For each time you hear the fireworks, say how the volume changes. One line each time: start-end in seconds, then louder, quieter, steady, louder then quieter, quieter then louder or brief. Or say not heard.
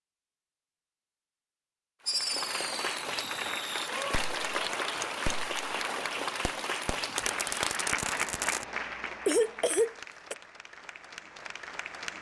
2.0-8.7 louder.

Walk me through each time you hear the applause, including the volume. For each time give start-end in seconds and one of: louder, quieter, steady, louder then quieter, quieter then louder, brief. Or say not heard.
2.0-12.1 quieter.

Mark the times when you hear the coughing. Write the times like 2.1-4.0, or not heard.
9.2-10.3.